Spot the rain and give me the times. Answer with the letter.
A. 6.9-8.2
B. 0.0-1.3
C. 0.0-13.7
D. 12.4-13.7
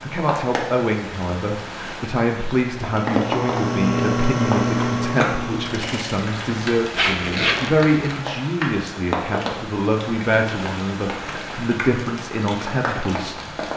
C.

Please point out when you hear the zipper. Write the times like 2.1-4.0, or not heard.
6.9-8.2.